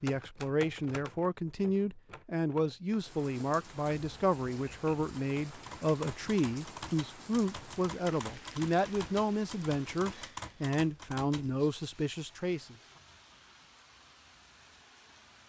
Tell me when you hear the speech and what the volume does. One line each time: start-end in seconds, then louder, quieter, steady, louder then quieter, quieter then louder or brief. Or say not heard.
0.0-12.8 steady.